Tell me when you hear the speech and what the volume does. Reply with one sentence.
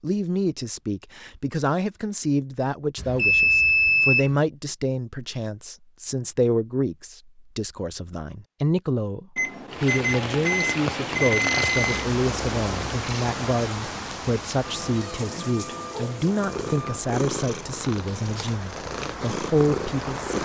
You can hear the speech from 0.0 to 20.4 s, at a steady volume.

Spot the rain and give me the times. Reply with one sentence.
You can hear the rain from 9.7 to 20.4 s.